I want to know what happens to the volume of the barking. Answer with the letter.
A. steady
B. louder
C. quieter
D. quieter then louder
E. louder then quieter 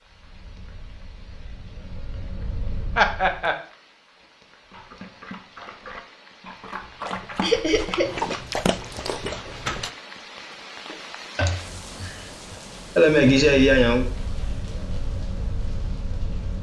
B.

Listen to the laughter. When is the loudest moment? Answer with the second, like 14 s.
13 s.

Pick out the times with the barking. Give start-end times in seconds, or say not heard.
4.7-9.9.